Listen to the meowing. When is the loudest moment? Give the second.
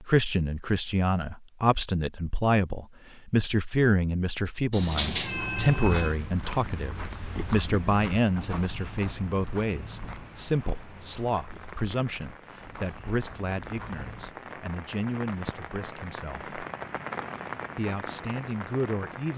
5 s.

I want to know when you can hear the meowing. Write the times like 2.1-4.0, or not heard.
4.7-6.2.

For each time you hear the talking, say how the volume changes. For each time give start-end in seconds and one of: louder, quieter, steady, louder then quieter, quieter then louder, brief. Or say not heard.
0.0-16.6 quieter
17.8-19.3 brief.